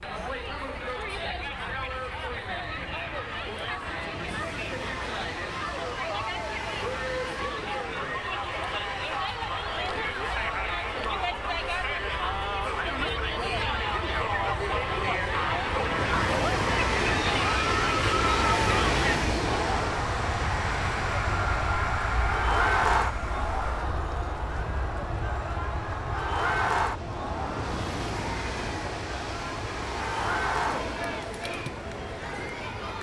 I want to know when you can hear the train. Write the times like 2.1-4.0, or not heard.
0.0-32.9.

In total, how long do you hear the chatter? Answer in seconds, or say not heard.
33 s.